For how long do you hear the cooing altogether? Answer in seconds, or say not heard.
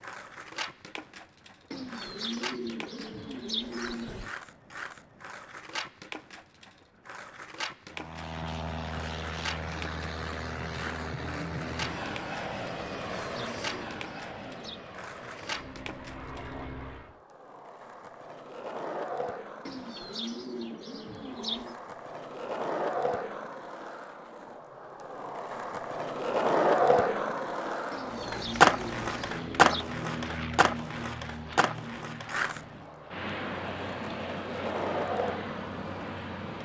9 s.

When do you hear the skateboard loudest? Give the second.
29 s.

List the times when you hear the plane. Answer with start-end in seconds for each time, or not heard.
7.9-17.2, 27.9-36.6.